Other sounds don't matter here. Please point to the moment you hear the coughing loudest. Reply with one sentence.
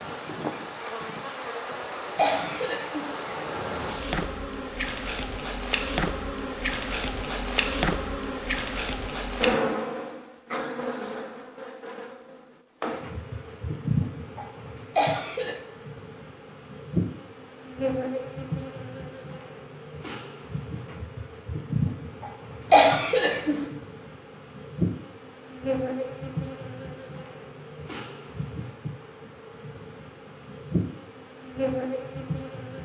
The loudest moment of the coughing is at 23 seconds.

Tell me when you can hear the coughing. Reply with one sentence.
The coughing can be heard from 2.1 to 3.1 s, from 14.9 to 15.6 s and from 22.7 to 23.6 s.